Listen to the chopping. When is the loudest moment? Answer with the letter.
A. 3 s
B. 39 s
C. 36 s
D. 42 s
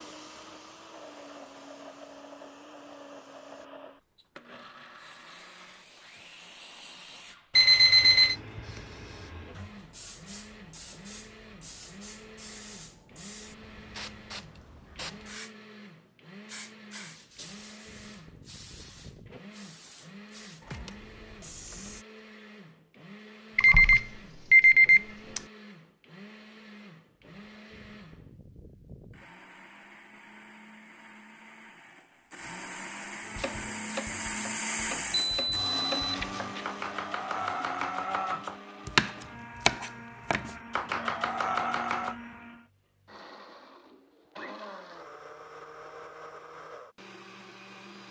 B.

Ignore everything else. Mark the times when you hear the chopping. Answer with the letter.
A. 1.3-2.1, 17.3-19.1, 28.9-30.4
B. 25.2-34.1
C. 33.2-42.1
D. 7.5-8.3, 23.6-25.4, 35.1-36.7
C.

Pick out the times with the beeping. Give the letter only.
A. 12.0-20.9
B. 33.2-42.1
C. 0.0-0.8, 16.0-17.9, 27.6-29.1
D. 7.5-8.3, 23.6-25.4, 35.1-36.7
D.